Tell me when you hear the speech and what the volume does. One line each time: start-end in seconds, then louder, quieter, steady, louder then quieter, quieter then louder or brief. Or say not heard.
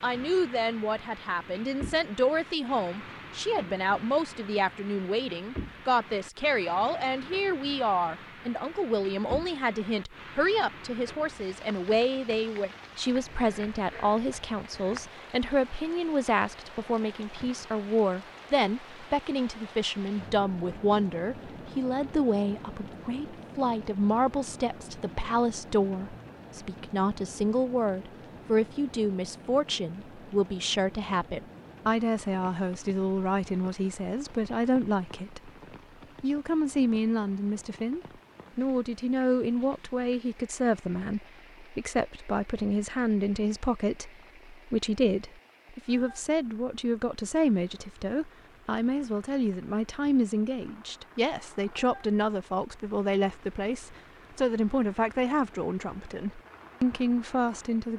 0.0-35.5 steady
36.2-57.9 steady.